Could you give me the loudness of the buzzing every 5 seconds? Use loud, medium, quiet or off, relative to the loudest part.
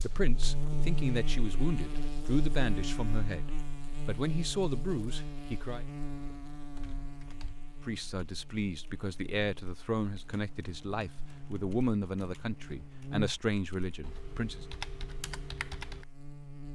loud, medium, medium, medium.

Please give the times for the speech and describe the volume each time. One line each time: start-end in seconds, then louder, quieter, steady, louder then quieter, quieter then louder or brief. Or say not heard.
0.0-5.8 steady
7.8-14.7 steady.